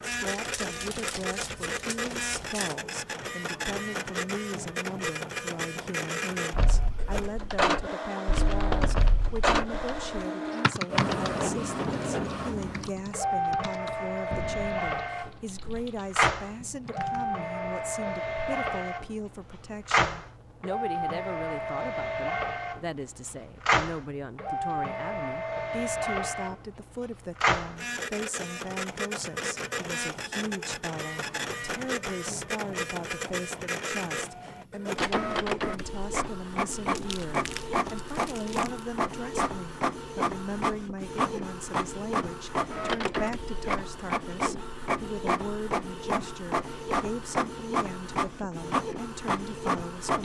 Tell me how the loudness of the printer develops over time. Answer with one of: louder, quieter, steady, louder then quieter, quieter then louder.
steady.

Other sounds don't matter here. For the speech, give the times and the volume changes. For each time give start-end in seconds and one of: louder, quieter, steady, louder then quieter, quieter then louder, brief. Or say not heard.
0.1-50.2 steady.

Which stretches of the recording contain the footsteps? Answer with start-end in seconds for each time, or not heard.
not heard.